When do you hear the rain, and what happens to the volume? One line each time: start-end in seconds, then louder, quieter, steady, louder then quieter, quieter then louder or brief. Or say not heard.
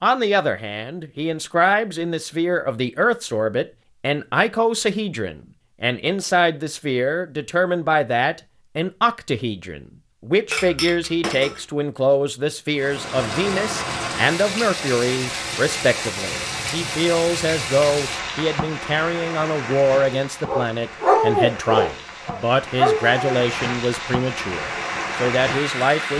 12.7-26.1 quieter then louder.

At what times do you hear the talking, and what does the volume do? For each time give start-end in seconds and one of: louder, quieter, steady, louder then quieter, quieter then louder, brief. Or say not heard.
0.0-26.1 steady.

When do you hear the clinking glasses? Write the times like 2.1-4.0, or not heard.
10.5-11.7.